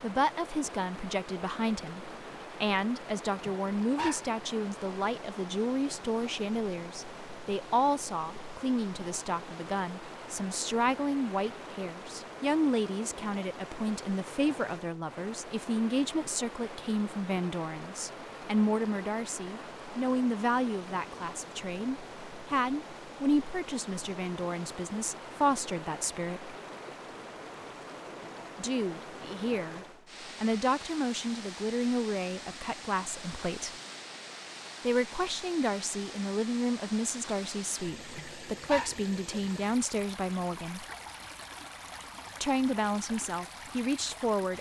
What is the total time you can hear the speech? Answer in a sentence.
The speech can be heard for 40 seconds in total.